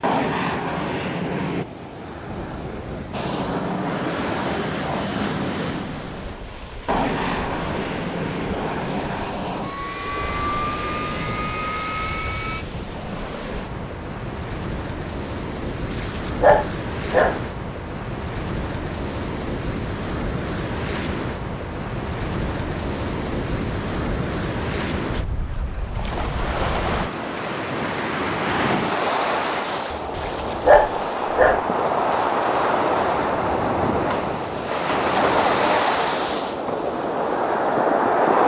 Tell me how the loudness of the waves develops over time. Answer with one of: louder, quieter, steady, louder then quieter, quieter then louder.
louder.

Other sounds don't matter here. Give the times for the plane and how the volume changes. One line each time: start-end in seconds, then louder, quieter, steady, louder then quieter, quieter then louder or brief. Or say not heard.
0.0-1.6 brief
3.1-12.7 steady.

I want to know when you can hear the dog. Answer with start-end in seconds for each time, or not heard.
15.7-17.4, 29.9-31.6.